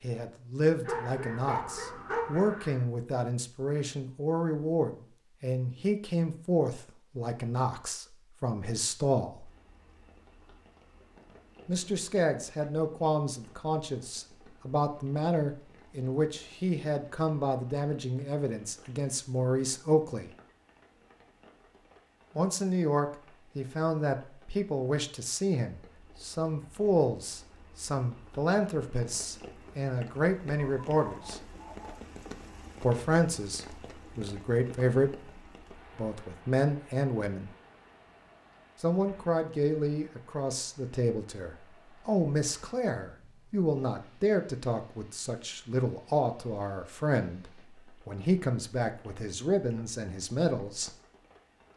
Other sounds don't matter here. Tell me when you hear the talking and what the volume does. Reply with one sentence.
You can hear the talking from 0.0 to 9.5 s, at a steady volume; from 11.7 to 20.3 s, at a steady volume; from 22.4 to 31.4 s, at a steady volume; briefly from 32.8 to 35.3 s; briefly from 36.0 to 37.5 s; and from 38.8 to 50.9 s, at a steady volume.